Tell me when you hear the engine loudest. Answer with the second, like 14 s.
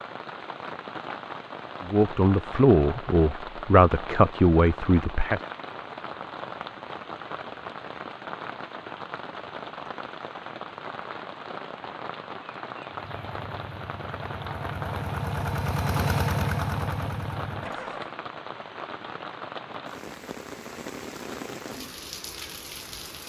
16 s.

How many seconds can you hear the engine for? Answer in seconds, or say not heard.
5 s.